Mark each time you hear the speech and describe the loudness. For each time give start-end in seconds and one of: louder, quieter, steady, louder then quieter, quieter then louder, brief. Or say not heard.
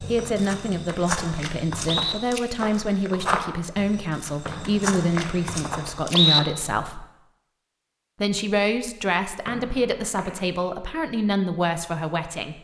0.0-7.0 steady
8.2-12.5 steady.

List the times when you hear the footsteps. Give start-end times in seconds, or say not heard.
0.0-6.5.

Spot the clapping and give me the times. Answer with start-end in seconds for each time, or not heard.
not heard.